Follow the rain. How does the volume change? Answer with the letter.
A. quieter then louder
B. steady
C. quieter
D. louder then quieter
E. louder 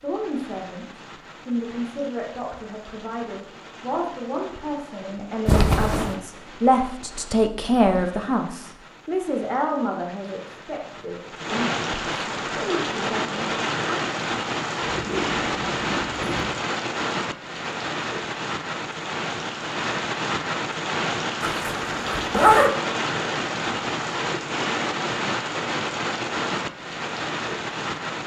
E.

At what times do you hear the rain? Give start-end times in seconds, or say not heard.
0.0-28.2.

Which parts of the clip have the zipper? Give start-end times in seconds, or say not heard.
5.5-6.2, 14.8-16.6, 21.4-22.7.